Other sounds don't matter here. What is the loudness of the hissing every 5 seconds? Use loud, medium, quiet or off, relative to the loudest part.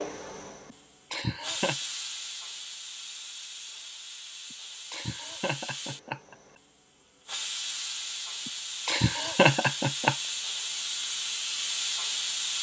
medium, medium, loud.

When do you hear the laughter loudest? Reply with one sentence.
The loudest moment of the laughter is at 10 seconds.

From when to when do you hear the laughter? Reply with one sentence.
You can hear the laughter from 0.7 to 1.8 s, from 4.5 to 6.3 s and from 8.4 to 10.2 s.